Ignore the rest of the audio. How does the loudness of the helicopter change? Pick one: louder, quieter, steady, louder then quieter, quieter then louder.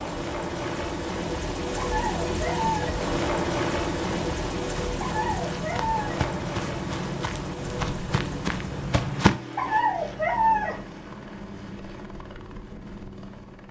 quieter.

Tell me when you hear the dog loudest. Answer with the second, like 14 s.
10 s.